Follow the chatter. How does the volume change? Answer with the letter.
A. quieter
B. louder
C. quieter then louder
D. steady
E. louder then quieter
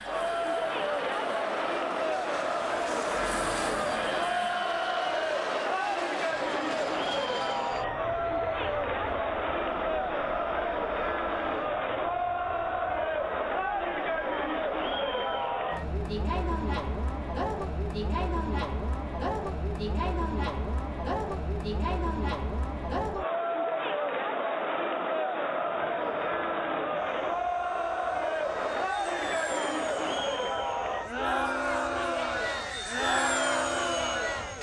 D.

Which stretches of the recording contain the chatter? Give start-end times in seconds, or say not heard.
0.0-34.5.